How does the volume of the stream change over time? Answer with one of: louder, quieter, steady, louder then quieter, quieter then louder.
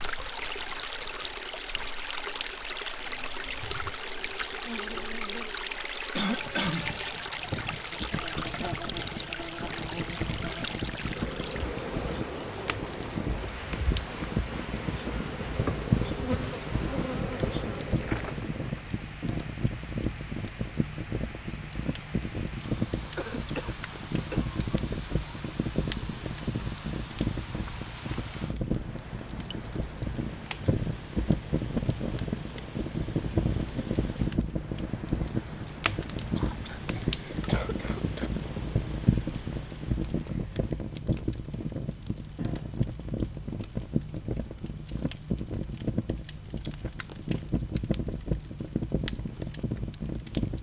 quieter.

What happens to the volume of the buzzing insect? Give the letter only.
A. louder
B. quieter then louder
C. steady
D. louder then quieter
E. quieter
A.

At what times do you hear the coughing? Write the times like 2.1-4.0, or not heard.
6.2-7.0, 23.1-24.4, 36.4-38.3.